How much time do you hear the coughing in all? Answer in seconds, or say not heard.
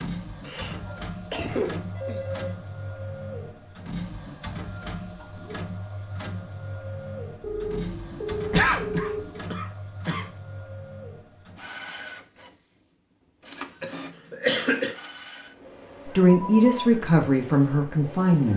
5 s.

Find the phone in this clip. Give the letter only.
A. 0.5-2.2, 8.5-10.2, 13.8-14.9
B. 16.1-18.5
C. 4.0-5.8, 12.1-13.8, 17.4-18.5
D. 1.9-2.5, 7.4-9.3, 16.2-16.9
D.